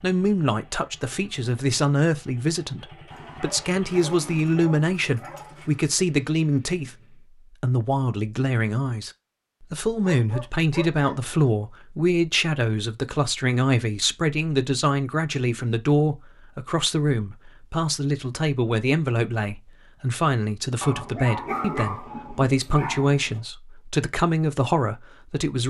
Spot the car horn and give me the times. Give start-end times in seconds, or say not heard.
not heard.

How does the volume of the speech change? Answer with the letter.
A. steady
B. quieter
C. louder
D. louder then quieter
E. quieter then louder
A.